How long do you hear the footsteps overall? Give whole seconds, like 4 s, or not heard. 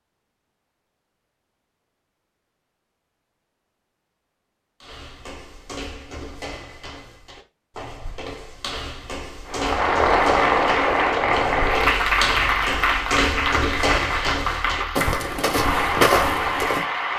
12 s.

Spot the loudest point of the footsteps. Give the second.
16 s.